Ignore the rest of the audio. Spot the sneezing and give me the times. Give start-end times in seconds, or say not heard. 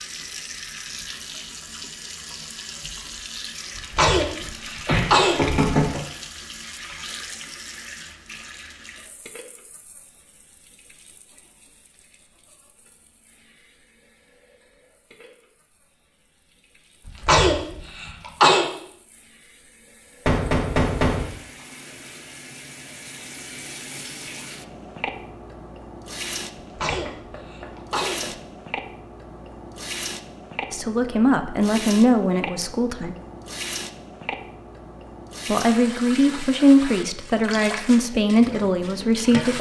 3.8-5.6, 17.1-18.6, 26.6-28.4.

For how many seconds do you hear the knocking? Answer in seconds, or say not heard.
4 s.